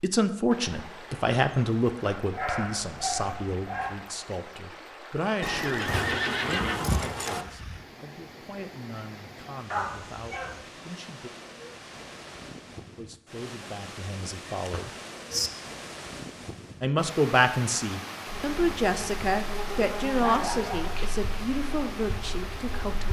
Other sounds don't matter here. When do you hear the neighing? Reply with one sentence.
The neighing can be heard from 5.4 to 7.5 s and from 14.4 to 15.5 s.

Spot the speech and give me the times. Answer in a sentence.
The speech can be heard from 0.0 to 11.3 s, from 12.9 to 14.9 s and from 16.8 to 23.0 s.